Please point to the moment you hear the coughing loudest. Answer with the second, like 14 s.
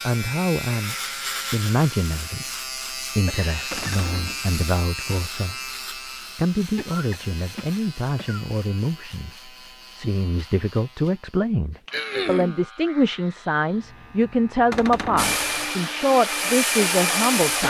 12 s.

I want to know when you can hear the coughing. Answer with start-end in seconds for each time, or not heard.
3.2-4.0, 6.8-8.4, 11.9-12.6.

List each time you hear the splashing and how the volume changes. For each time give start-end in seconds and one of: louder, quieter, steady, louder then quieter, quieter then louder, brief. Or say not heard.
not heard.